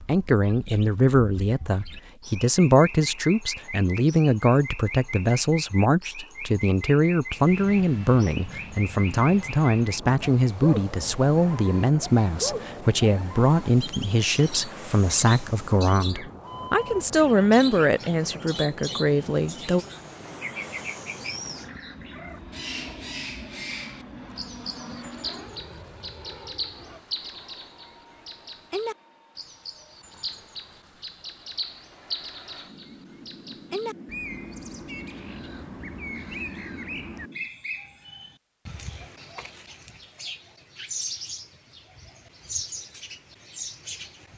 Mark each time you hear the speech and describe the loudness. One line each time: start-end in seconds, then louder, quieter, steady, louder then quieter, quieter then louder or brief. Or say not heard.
0.1-19.9 steady.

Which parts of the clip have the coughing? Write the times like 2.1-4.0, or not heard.
not heard.